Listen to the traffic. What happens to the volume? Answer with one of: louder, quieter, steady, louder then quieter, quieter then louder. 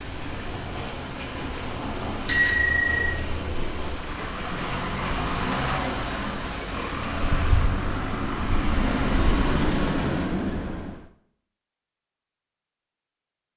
louder.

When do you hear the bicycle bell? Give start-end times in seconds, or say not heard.
2.2-3.1.